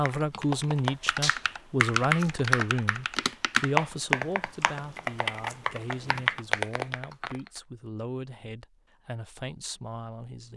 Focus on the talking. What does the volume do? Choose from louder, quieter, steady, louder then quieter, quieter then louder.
quieter.